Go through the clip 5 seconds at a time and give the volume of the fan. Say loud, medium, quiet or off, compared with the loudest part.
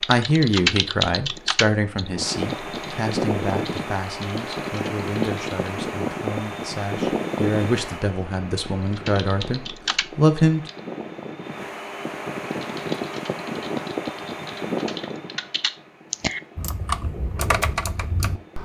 loud, loud, loud, quiet.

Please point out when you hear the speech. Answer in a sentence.
The speech can be heard from 0.1 to 10.6 s.